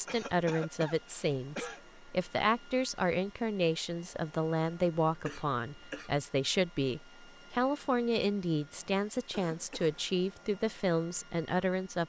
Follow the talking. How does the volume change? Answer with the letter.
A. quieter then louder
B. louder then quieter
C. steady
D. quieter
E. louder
C.